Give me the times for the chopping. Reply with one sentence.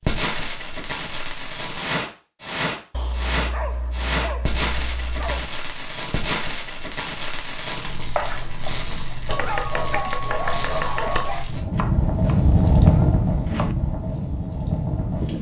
The chopping can be heard from 8.2 to 13.8 s.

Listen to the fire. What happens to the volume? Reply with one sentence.
The volume of the fire goes up.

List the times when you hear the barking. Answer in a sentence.
The barking can be heard from 2.9 to 5.5 s and from 9.2 to 11.5 s.